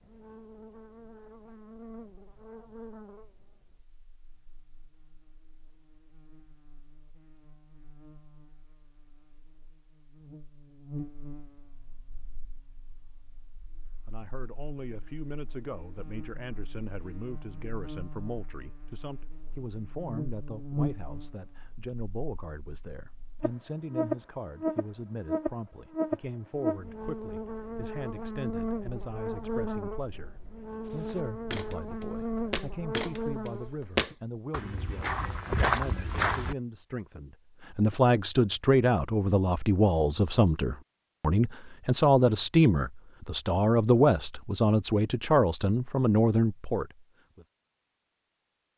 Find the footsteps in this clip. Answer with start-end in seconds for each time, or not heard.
30.9-36.5.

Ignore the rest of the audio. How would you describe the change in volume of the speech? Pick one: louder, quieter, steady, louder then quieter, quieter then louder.
louder.